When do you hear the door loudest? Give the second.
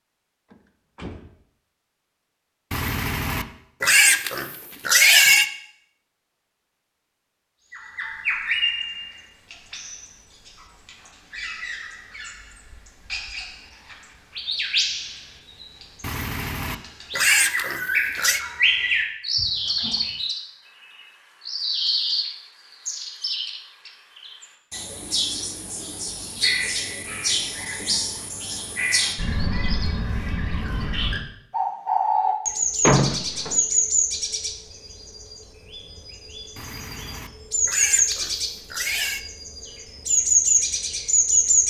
33 s.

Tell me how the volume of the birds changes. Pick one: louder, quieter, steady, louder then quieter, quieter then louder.
louder.